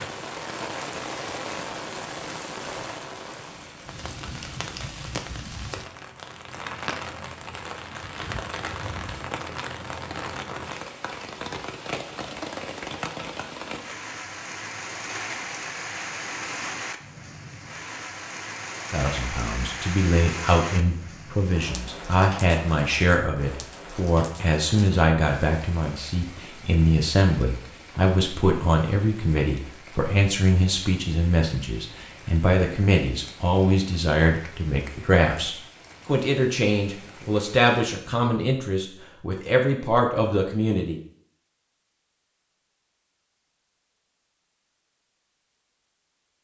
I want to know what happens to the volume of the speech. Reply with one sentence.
The volume of the speech stays about the same.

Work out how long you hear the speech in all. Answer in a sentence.
You can hear the speech for 22 seconds altogether.